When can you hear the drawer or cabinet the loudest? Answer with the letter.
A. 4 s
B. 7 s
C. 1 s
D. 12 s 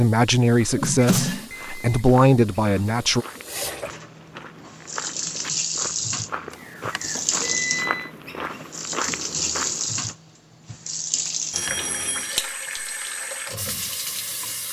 C.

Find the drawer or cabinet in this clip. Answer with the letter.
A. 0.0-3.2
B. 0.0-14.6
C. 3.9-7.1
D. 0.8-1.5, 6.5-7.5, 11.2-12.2
D.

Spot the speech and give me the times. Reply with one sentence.
The speech can be heard from 0.0 to 3.2 s.